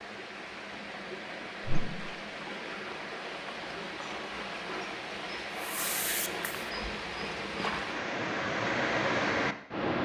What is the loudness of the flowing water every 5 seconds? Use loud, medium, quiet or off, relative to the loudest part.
medium, loud.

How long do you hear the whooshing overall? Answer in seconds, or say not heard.
2 s.